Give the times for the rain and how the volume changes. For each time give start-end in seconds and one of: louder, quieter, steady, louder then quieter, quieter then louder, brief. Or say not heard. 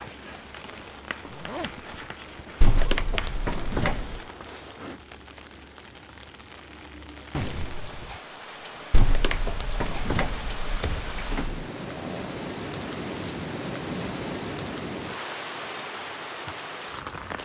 0.0-17.4 louder.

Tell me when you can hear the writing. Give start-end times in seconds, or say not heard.
0.0-5.0.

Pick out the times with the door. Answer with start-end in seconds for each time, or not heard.
2.6-4.2, 8.9-11.7.